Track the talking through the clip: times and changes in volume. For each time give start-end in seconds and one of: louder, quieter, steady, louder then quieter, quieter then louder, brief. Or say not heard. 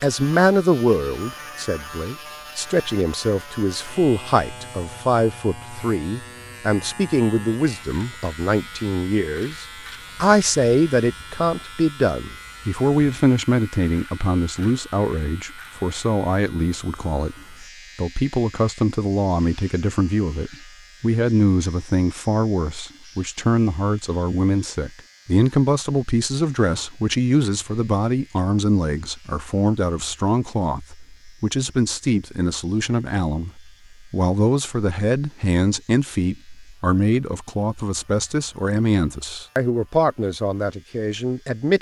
0.0-41.7 steady.